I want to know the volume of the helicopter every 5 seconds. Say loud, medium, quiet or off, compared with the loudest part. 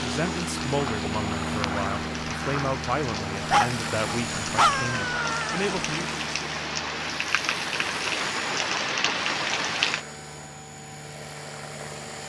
loud, medium, medium.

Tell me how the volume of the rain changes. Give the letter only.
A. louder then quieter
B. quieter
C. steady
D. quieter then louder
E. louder
E.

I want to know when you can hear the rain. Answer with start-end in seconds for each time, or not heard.
0.0-10.1.